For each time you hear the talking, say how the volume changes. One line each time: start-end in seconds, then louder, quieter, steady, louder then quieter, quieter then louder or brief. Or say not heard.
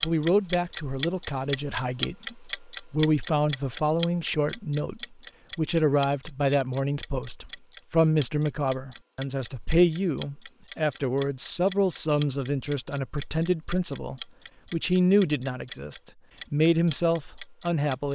0.0-18.0 steady.